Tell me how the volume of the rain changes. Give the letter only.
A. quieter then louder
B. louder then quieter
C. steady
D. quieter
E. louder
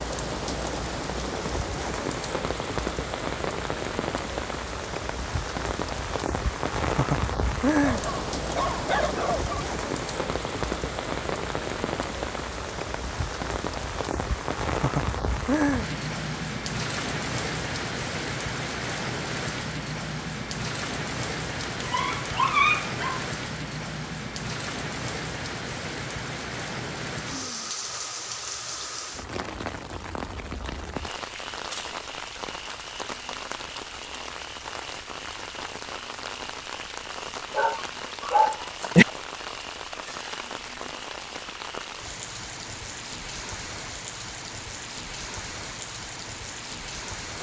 D.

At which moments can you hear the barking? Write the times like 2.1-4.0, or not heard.
7.8-9.7, 21.8-23.2, 37.5-39.0.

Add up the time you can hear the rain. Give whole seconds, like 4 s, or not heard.
47 s.